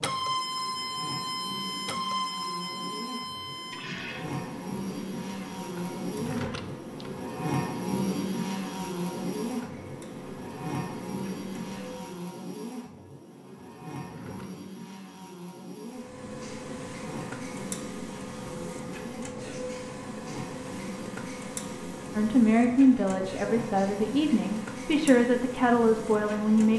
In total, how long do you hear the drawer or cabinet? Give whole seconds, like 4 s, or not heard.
2 s.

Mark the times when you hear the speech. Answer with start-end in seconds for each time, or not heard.
22.1-26.7.